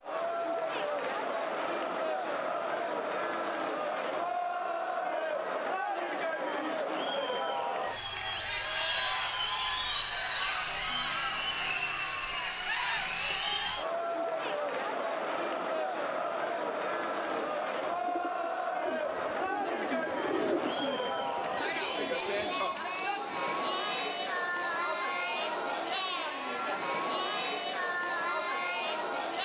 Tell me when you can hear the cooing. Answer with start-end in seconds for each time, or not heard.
17.2-22.9.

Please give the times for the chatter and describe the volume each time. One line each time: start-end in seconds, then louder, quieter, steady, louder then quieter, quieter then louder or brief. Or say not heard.
0.0-29.4 steady.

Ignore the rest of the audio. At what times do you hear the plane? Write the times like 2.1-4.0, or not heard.
not heard.